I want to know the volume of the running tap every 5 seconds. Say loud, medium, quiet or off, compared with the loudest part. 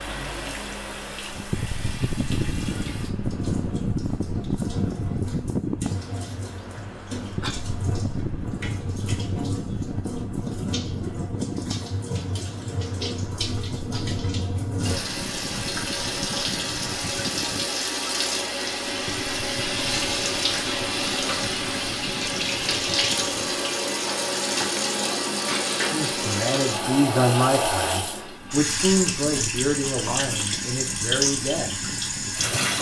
quiet, medium, medium, loud, loud, loud, loud.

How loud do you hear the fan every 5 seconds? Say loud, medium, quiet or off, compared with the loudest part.
loud, loud, medium, medium, medium, medium, medium.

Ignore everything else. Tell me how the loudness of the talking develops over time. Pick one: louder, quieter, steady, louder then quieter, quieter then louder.
quieter.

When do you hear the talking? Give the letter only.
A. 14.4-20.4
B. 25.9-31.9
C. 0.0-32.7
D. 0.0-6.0
B.